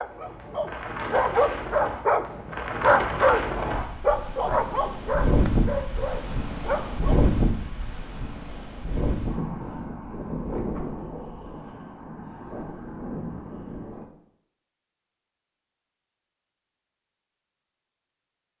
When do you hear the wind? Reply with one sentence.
The wind can be heard from 0.0 to 14.1 s.